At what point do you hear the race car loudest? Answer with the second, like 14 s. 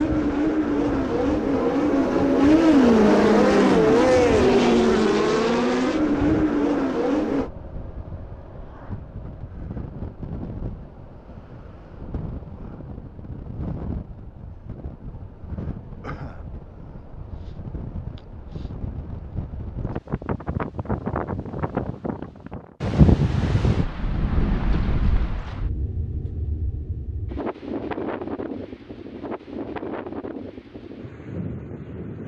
3 s.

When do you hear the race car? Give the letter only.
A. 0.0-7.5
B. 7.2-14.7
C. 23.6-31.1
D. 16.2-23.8
A.